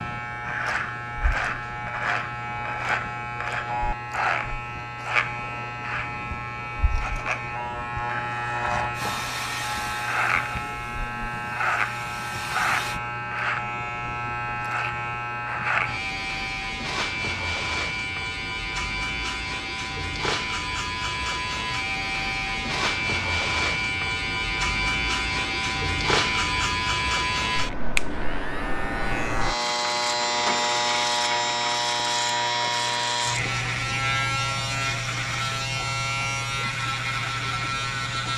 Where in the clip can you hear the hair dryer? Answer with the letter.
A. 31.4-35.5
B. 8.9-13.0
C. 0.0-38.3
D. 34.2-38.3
B.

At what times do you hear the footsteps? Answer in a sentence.
The footsteps can't be heard in this clip.